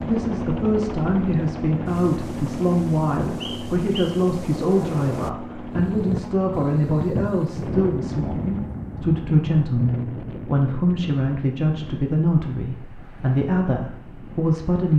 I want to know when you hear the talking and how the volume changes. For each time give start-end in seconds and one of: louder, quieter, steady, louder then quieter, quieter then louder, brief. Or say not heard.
0.0-14.9 steady.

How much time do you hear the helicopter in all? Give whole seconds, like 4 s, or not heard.
9 s.